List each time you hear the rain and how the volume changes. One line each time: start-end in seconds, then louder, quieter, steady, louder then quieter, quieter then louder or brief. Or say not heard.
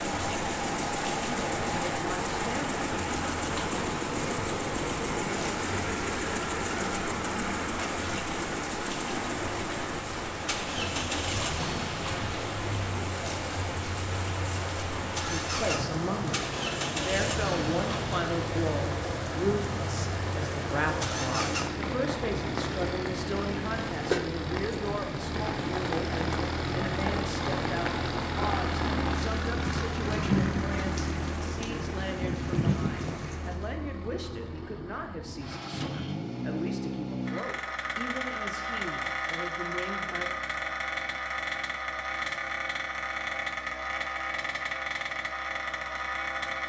0.0-33.8 steady.